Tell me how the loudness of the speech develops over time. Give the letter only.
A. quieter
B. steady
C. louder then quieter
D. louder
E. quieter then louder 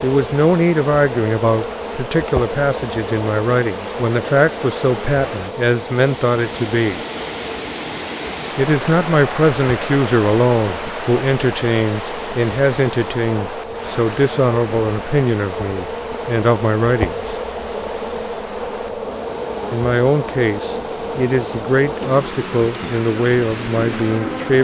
B.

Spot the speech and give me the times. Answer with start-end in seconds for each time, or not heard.
0.0-7.0, 8.6-17.4, 19.7-24.5.